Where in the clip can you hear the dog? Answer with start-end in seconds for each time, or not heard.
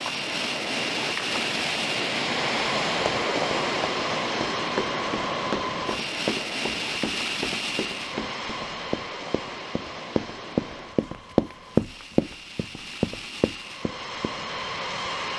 not heard.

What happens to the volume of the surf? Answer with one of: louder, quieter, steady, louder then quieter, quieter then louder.
quieter.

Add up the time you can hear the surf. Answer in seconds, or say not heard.
11 s.